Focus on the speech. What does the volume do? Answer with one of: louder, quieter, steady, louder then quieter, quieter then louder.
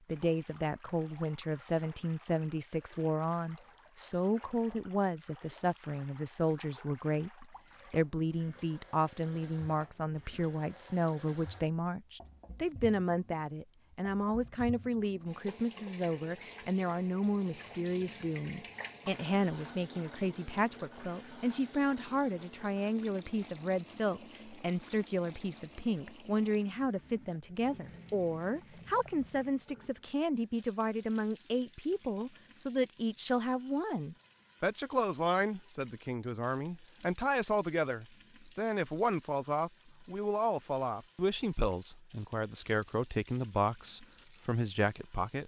steady.